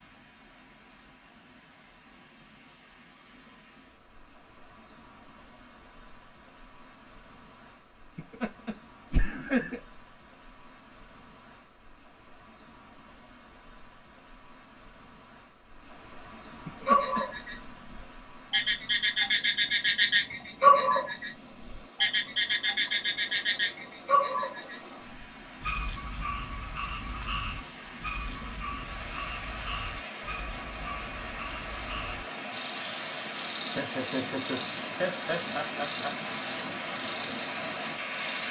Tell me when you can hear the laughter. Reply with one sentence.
The laughter can be heard from 8.2 to 9.8 s, from 16.6 to 17.2 s and from 33.8 to 36.1 s.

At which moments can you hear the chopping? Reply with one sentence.
The chopping can't be heard in this clip.